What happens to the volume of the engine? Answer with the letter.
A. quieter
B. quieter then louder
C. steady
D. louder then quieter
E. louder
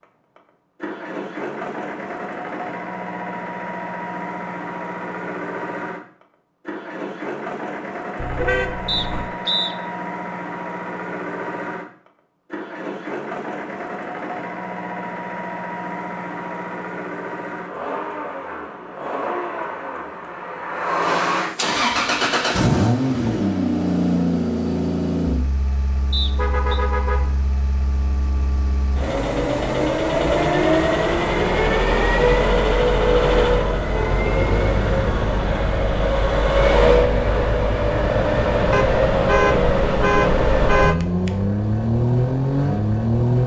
E.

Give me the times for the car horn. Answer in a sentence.
The car horn can be heard from 8.2 to 9.3 s, from 26.3 to 27.4 s and from 38.7 to 41.3 s.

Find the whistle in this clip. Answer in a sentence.
The whistle can be heard from 8.8 to 9.8 s and from 26.1 to 26.8 s.